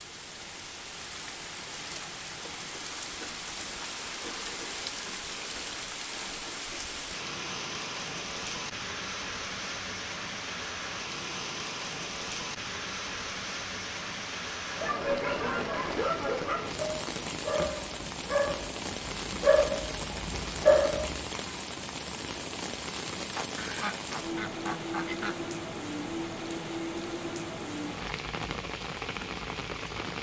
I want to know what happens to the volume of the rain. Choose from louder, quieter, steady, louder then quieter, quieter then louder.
steady.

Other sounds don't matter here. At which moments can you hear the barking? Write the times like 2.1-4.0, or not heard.
14.7-21.2.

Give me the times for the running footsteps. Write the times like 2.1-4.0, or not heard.
not heard.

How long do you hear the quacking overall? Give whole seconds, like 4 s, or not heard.
2 s.